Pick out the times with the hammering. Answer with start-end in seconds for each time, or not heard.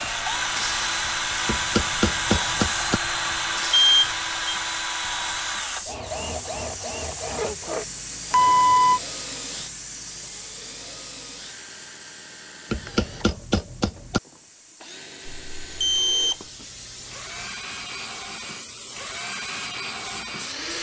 1.4-3.0, 12.7-14.2.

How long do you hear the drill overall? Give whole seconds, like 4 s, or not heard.
21 s.